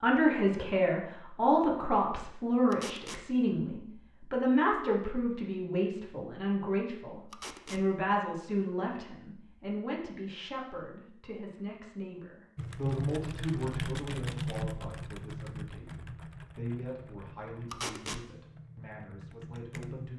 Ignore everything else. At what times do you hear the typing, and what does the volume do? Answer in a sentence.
You can hear the typing from 12.6 to 20.1 s, getting quieter.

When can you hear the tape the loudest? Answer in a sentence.
The loudest moment of the tape is at 18 seconds.